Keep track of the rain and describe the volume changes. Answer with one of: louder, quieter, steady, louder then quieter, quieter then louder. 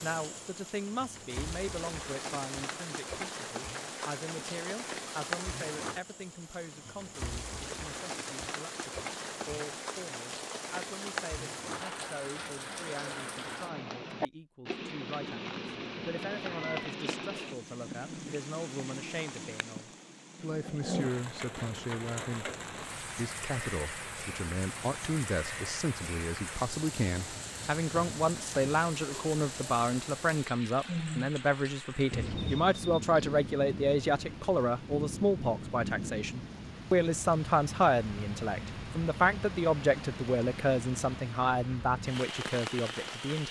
steady.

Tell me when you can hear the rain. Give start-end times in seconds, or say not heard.
0.0-43.4.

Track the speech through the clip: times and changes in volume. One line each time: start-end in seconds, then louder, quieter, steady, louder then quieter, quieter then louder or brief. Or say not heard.
0.0-43.4 louder.